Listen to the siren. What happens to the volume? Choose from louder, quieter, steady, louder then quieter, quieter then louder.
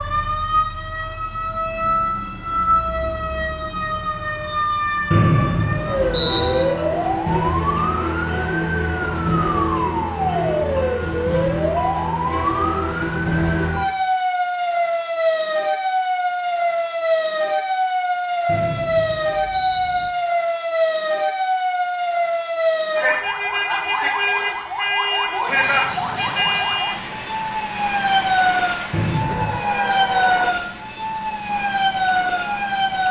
steady.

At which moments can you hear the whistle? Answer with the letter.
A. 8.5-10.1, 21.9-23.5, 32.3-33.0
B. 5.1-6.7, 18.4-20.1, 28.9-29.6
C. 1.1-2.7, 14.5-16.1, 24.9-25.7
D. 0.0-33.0
B.